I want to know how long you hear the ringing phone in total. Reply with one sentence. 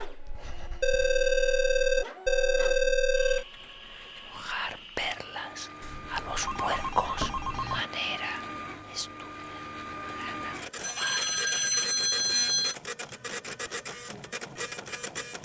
You can hear the ringing phone for 7 seconds altogether.